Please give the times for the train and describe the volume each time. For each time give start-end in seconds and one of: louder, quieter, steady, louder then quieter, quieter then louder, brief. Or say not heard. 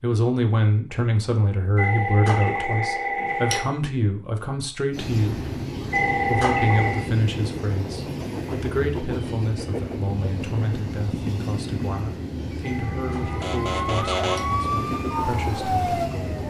4.9-16.4 steady.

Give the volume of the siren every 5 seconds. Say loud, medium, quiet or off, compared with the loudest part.
off, off, loud, loud.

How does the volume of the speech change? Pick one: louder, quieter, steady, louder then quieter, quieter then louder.
quieter.